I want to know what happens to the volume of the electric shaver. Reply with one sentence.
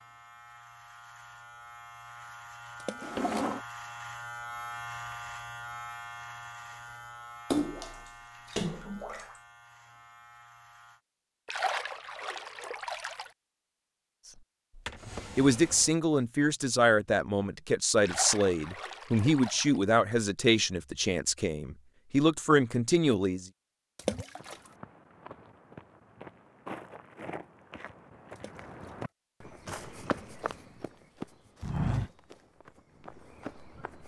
The volume of the electric shaver goes up, then down.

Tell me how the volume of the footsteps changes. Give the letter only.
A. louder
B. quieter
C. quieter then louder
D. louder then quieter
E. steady
A.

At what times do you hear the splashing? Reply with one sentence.
The splashing can be heard from 2.8 to 3.2 s, from 7.5 to 9.3 s, from 11.4 to 13.3 s, from 18.0 to 19.8 s, from 23.9 to 24.6 s and from 28.4 to 28.9 s.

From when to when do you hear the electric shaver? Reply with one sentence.
The electric shaver can be heard from 0.0 to 11.0 s.